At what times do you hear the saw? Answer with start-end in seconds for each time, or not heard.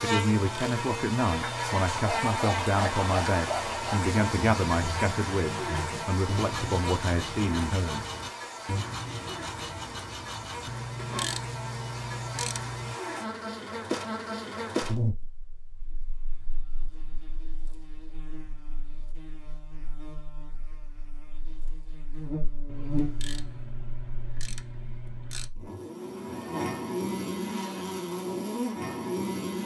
1.9-11.2.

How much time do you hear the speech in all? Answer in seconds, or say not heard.
8 s.